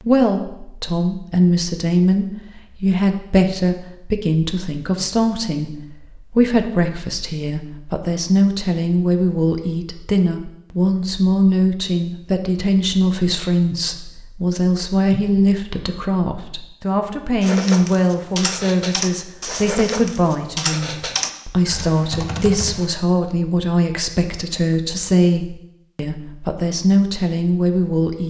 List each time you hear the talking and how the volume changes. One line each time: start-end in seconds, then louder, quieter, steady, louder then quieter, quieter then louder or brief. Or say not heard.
0.0-28.2 steady.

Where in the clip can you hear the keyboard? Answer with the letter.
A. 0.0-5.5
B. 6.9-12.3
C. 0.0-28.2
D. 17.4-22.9
D.